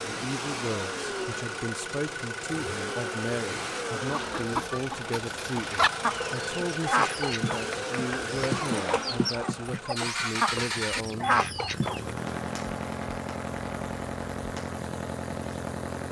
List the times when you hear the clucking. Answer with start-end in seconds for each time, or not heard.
4.1-12.2.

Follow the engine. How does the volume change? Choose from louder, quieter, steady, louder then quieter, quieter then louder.
steady.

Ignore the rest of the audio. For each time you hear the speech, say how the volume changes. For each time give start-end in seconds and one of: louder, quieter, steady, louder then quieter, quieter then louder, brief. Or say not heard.
0.0-11.4 steady.